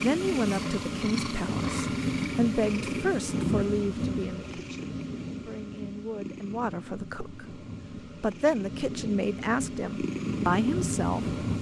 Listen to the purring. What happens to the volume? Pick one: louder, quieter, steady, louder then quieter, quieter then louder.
quieter then louder.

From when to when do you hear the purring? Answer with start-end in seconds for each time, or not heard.
0.0-11.5.